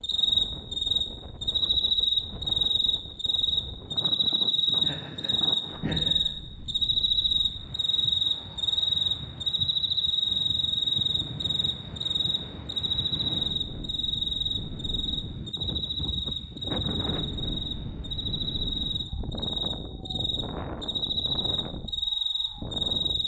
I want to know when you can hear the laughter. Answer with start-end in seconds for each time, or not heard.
4.8-6.3.